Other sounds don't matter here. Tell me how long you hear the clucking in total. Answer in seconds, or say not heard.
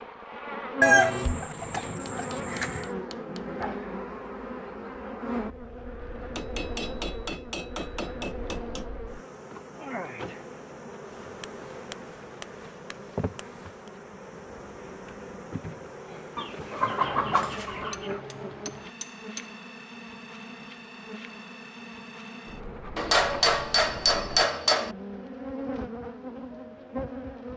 4 s.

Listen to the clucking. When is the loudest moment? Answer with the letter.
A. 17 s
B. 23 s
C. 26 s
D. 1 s
D.